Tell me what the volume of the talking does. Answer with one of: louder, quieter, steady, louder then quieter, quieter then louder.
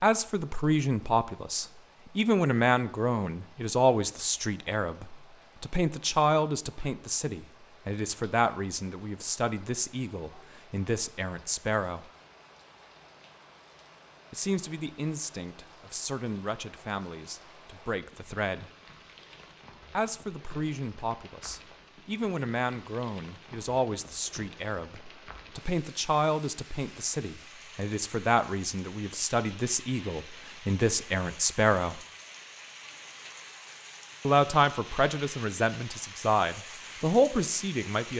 quieter then louder.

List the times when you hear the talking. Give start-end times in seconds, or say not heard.
0.0-12.1, 14.3-18.7, 19.9-32.0, 34.2-38.1.